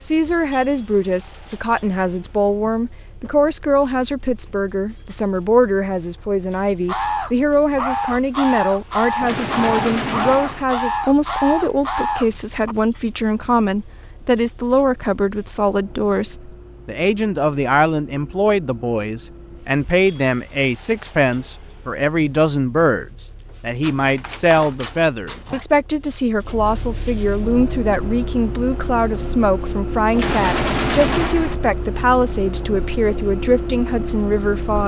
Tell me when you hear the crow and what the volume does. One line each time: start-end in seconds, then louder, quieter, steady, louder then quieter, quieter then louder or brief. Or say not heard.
6.8-12.8 steady.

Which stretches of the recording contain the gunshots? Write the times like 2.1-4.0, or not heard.
9.2-10.7, 30.1-31.6.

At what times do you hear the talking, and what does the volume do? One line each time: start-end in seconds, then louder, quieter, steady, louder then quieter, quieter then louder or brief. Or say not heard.
0.0-34.8 steady.